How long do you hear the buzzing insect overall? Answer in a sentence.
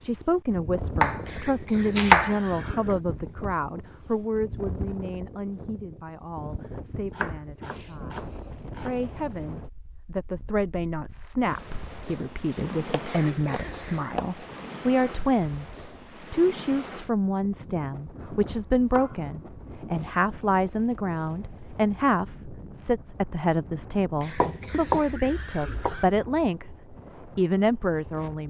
The buzzing insect can't be heard in this clip.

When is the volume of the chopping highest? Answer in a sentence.
The loudest moment of the chopping is at 2 seconds.